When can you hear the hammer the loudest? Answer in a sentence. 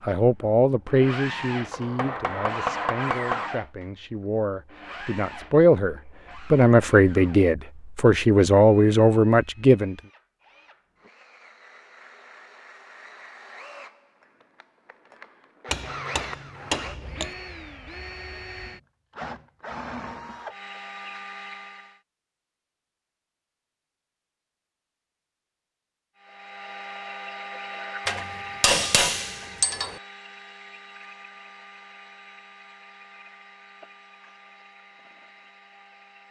The volume of the hammer peaks at 29 seconds.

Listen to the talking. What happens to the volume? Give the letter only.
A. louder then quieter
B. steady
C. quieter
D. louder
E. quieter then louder
E.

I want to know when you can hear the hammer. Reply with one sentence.
The hammer can be heard from 1.7 to 3.5 s, from 15.7 to 17.4 s and from 28.1 to 29.9 s.